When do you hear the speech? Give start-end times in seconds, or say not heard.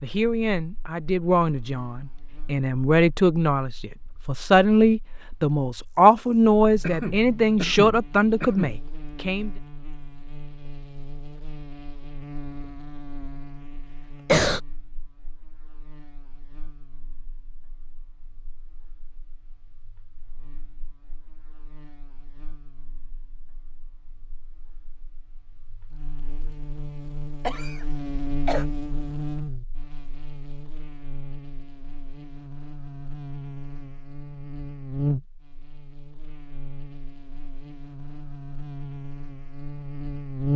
0.0-9.5.